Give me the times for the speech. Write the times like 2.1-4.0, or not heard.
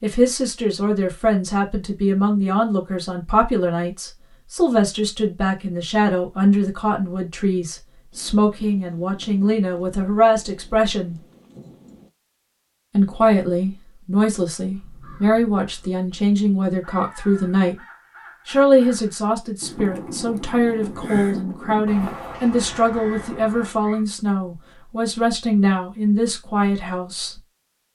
0.0-11.2, 12.9-17.8, 18.4-27.4.